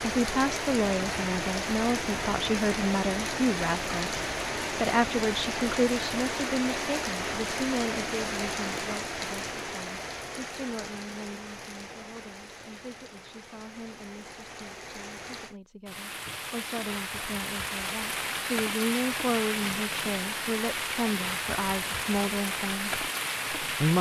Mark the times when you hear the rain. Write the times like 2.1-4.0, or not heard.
0.0-23.9.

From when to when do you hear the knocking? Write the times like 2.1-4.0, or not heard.
not heard.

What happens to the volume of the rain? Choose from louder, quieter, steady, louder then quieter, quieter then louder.
quieter then louder.